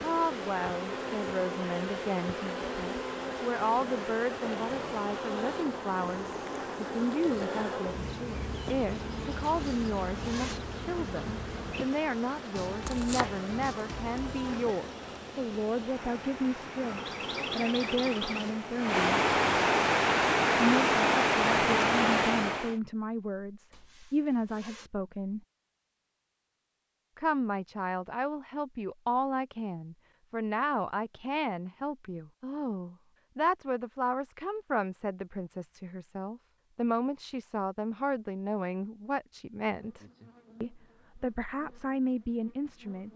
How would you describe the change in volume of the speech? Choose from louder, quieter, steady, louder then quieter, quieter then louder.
steady.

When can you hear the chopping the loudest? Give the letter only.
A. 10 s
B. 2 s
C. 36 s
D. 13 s
D.